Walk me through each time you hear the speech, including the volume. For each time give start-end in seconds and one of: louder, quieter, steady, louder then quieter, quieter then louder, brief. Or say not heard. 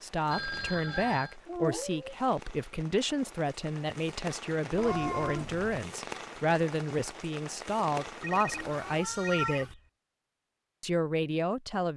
0.0-9.8 steady
10.8-11.9 brief.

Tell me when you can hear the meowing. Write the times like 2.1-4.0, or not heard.
0.8-2.0, 4.8-5.8, 8.5-9.8.